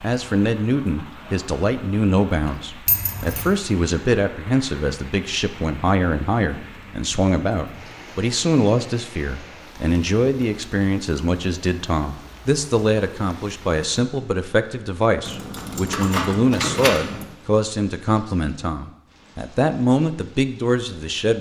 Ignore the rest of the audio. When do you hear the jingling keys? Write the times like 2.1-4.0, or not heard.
2.9-3.5, 15.2-17.2.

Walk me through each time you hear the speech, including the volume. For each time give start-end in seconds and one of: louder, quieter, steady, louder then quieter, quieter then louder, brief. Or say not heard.
0.0-21.3 steady.